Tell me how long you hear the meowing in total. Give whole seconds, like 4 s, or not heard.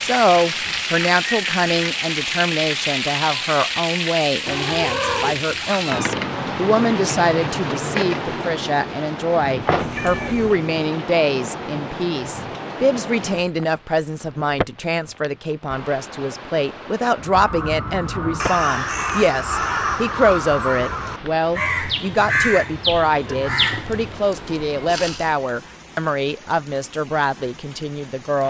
4 s.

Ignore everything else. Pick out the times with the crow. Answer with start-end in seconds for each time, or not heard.
17.1-24.1.